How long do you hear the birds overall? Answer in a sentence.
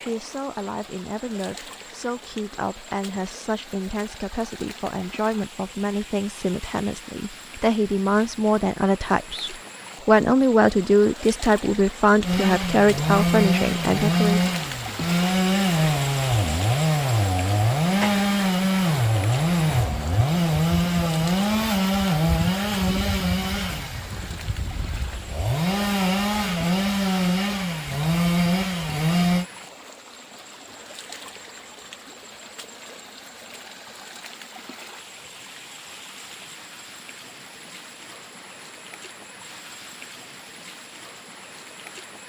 You can't hear the birds here.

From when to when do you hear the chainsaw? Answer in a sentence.
You can hear the chainsaw from 12.2 to 29.4 s.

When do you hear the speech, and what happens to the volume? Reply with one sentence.
You can hear the speech from 0.0 to 14.5 s, getting louder.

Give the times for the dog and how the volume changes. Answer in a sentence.
The dog can't be heard in this clip.